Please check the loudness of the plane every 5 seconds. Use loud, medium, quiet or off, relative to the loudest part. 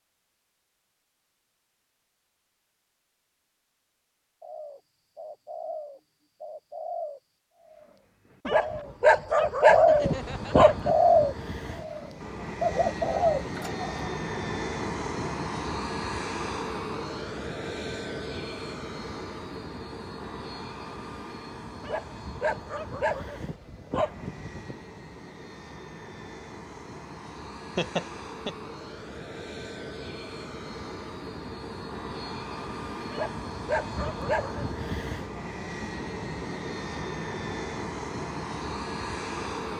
off, off, loud, loud, medium, medium, loud, loud.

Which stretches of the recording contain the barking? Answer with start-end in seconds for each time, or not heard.
8.4-10.9, 21.8-24.8, 33.1-34.8.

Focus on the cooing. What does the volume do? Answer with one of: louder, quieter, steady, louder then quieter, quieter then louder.
louder then quieter.